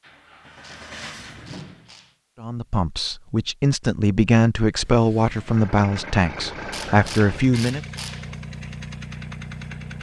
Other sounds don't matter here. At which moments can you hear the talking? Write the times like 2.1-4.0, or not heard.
2.4-7.8.